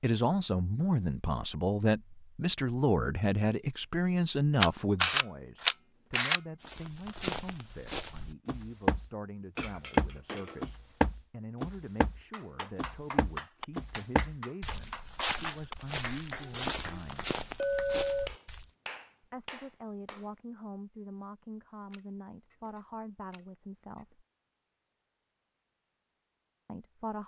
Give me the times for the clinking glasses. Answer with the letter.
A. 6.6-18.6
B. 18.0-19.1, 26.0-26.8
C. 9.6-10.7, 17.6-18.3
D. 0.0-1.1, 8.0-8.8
C.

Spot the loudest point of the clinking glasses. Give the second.
18 s.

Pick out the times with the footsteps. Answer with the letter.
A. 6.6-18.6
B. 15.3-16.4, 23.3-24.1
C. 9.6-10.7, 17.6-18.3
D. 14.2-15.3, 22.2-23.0
A.